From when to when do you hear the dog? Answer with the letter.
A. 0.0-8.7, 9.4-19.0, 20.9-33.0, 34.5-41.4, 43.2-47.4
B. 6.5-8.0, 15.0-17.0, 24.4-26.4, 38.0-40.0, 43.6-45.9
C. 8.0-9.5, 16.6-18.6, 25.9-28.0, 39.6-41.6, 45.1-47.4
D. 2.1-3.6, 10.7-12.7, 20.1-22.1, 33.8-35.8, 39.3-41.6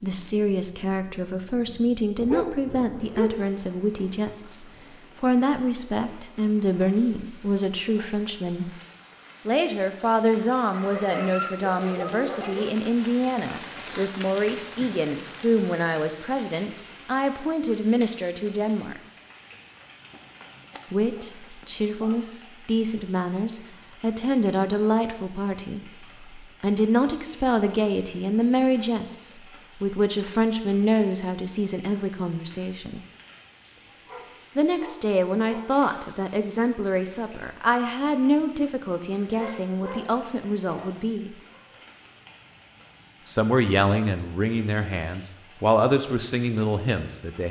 D.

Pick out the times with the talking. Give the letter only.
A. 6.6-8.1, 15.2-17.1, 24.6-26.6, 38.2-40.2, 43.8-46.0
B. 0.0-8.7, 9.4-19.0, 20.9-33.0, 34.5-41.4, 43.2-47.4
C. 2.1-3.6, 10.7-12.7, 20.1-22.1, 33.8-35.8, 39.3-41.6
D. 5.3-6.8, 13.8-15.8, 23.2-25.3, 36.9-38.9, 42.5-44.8
B.